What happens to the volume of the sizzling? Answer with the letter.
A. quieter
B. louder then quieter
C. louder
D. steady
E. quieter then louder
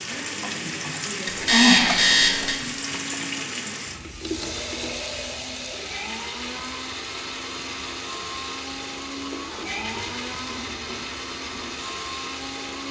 A.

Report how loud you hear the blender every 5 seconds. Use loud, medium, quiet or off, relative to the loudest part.
medium, loud, loud.